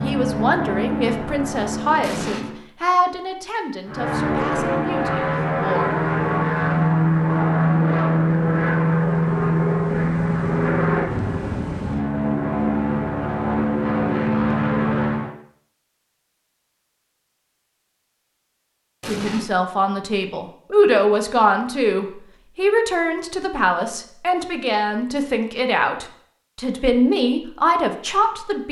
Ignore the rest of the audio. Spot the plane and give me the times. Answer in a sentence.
You can hear the plane from 0.0 to 2.6 s and from 3.9 to 15.3 s.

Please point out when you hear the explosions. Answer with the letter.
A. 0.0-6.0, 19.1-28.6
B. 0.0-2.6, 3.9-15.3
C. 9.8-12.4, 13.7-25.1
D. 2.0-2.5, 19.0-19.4
D.